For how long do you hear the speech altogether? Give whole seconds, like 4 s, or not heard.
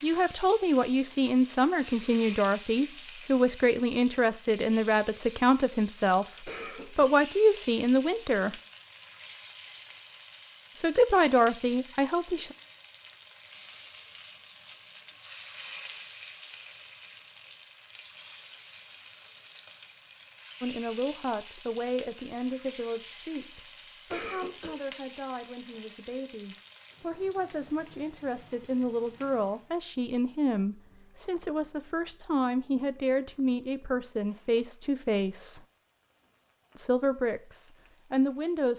27 s.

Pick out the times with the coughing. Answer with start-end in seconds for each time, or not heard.
6.5-7.1, 24.1-24.8.